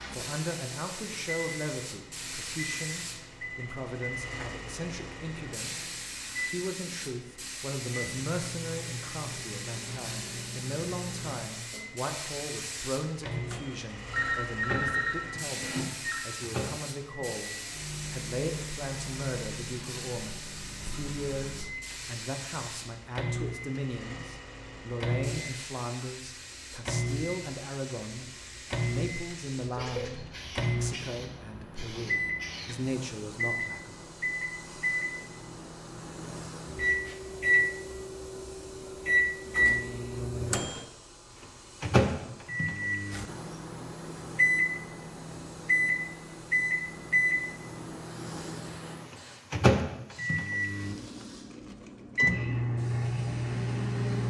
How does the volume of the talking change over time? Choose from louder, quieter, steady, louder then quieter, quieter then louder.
steady.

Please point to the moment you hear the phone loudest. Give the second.
15 s.